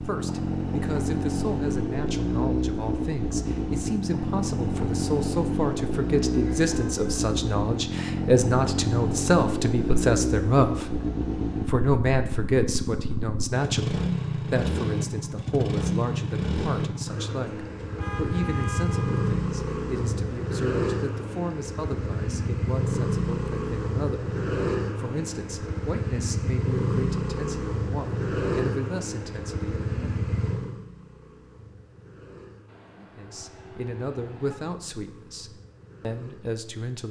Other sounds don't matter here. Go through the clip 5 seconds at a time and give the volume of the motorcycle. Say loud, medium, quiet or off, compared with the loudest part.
loud, loud, loud, loud, loud, loud, medium, quiet.